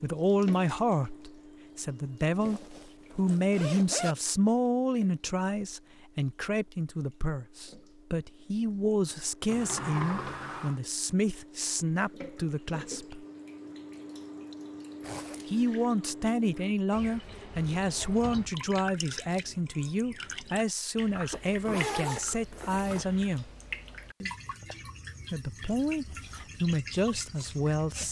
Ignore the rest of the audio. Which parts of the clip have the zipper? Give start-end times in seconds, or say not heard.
2.4-4.2, 15.0-15.7, 21.3-23.1.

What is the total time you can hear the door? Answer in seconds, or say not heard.
2 s.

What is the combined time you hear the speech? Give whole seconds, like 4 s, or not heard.
24 s.